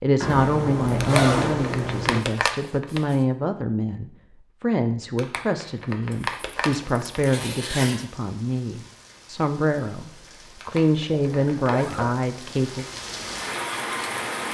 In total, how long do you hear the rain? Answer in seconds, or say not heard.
8 s.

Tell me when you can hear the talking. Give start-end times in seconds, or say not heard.
0.0-12.8.